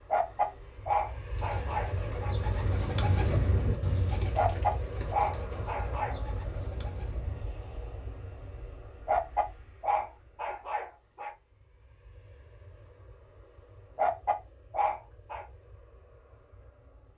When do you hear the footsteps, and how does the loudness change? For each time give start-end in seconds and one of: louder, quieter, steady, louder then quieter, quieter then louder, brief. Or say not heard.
not heard.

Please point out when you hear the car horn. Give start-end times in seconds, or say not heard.
not heard.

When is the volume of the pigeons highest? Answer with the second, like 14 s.
3 s.